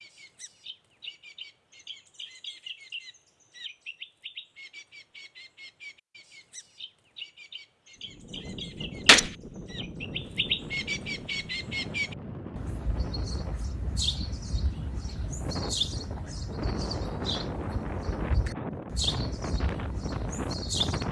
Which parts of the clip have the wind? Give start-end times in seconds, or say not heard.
8.0-21.0.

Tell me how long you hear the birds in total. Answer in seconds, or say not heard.
21 s.